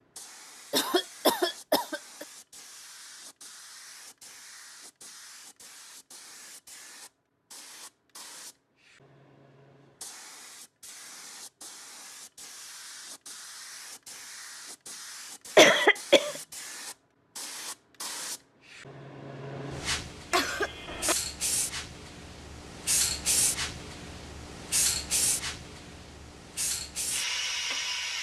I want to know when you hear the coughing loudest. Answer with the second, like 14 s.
16 s.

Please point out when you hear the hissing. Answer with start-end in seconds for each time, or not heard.
0.1-28.1.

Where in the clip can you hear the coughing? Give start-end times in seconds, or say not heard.
0.7-2.2, 15.6-16.4, 20.3-21.1.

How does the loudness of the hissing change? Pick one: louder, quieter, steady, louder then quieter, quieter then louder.
louder.